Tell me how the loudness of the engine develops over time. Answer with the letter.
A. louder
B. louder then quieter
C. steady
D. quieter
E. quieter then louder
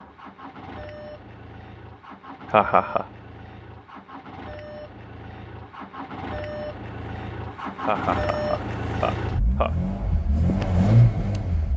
A.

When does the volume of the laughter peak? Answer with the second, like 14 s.
3 s.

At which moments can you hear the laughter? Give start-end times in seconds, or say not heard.
2.5-3.0, 7.8-9.8.